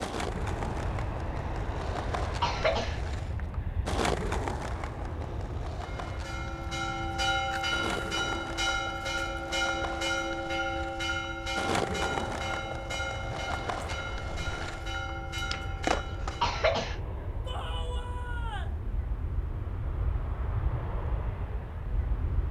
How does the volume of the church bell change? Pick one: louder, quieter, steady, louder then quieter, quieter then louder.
quieter.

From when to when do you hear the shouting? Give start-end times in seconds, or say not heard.
17.4-18.8.